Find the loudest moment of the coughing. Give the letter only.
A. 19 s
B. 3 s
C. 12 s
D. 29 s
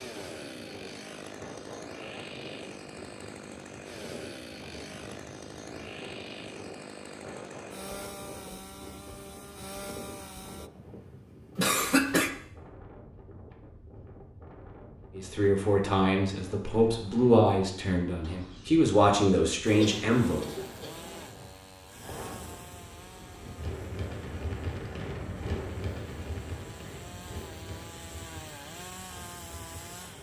C.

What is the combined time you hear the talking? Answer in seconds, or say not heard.
5 s.